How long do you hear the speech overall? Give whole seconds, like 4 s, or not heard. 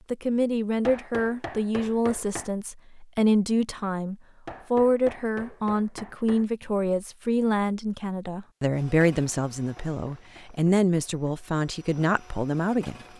13 s.